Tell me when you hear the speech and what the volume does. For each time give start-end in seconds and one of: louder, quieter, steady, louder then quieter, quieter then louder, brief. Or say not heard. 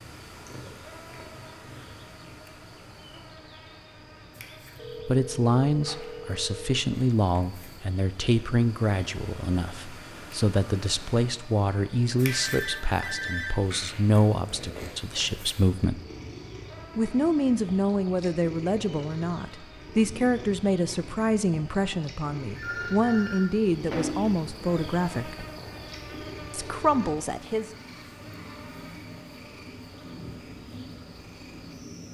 5.0-16.0 steady
16.9-25.4 steady
26.5-27.6 brief.